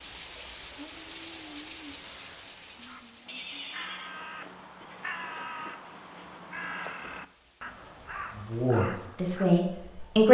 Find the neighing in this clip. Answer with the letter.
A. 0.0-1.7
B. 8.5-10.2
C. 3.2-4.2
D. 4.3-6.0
C.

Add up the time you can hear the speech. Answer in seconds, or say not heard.
2 s.